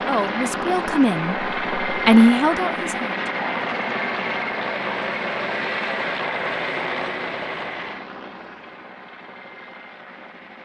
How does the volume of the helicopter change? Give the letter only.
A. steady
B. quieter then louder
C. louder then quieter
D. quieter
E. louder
D.